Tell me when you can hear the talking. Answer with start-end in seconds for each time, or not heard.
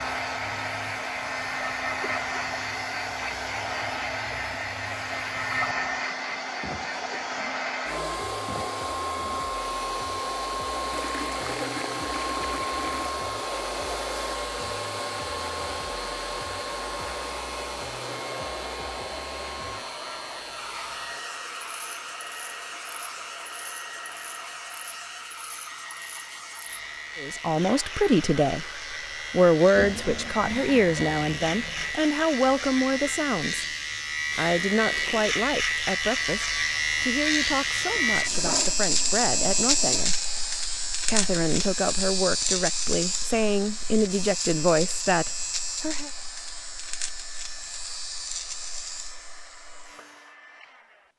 27.1-28.6, 29.3-33.6, 34.4-40.1, 41.0-46.1.